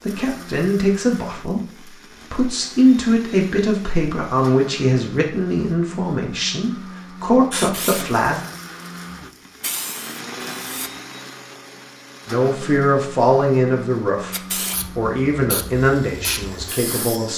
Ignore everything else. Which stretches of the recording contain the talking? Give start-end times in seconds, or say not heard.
0.0-8.4, 12.2-17.3.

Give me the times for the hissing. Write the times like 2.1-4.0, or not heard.
7.5-10.9, 14.3-17.3.